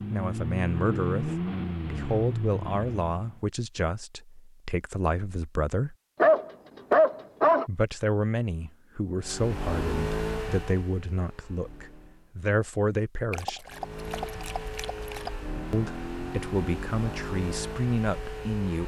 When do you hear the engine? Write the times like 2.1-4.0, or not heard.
0.0-3.4, 9.2-12.3, 13.7-18.8.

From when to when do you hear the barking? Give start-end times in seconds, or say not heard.
6.2-7.7, 13.3-15.3.